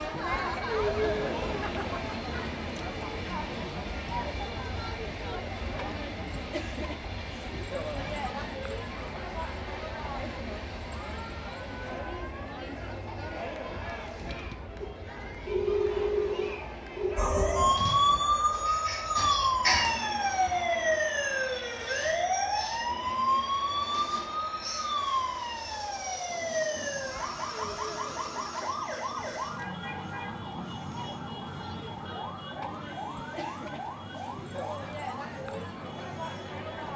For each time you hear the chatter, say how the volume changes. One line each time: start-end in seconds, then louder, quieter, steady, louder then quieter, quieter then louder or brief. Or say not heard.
0.0-36.9 quieter.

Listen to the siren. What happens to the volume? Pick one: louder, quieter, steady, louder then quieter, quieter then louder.
quieter.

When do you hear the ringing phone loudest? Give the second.
16 s.